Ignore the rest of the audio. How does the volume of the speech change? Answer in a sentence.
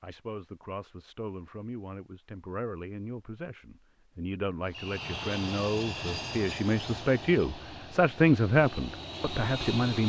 The volume of the speech goes up.